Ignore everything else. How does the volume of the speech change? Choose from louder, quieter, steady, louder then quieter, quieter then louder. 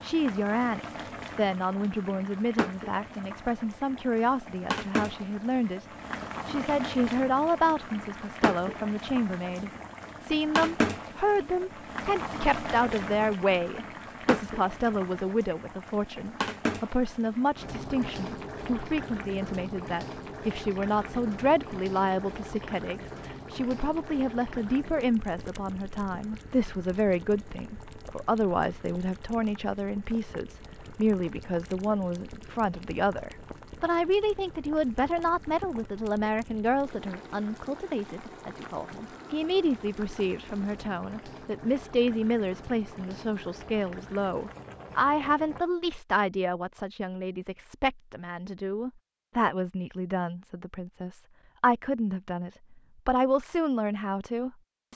steady.